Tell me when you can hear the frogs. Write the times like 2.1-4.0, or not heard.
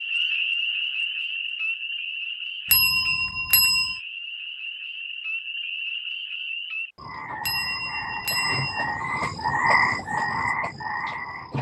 0.0-11.5.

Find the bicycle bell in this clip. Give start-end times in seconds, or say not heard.
2.7-4.0, 7.5-8.8.